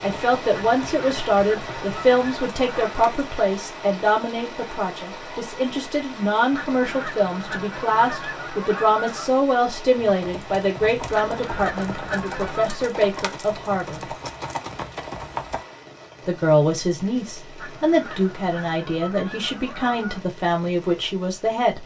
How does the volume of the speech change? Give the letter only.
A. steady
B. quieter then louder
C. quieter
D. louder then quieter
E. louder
A.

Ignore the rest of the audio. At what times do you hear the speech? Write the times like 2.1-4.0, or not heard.
0.0-14.0, 16.2-21.8.